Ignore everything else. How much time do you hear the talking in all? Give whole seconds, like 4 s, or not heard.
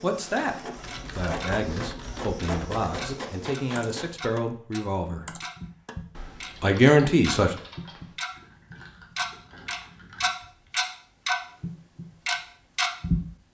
6 s.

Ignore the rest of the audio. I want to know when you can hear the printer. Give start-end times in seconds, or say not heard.
0.0-4.2.